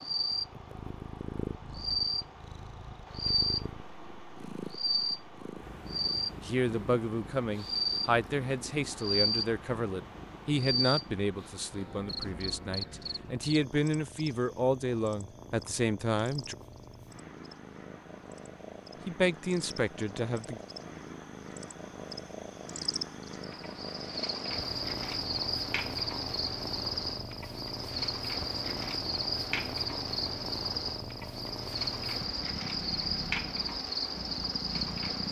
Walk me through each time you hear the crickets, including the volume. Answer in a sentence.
The crickets can be heard from 0.0 to 35.2 s, getting quieter then louder.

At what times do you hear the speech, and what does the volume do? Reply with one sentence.
The speech can be heard from 6.4 to 16.6 s, at a steady volume; and briefly from 19.1 to 20.6 s.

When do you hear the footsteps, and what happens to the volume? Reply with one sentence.
The footsteps can't be heard in this clip.